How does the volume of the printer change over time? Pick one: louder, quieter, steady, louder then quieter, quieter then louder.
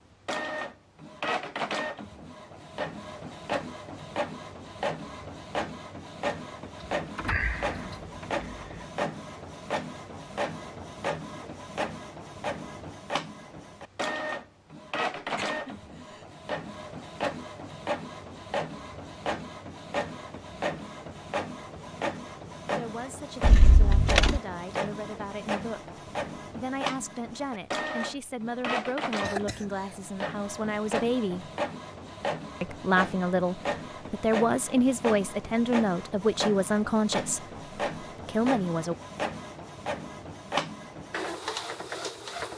steady.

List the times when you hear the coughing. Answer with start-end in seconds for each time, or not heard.
15.2-16.2, 29.2-29.9.